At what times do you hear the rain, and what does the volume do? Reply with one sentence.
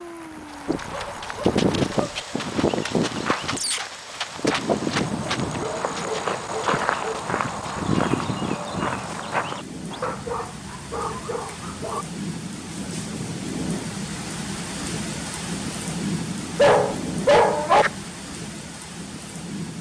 The rain can be heard from 0.0 to 19.7 s, getting louder.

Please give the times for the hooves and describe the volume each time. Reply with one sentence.
You can hear the hooves from 0.3 to 10.3 s, at a steady volume.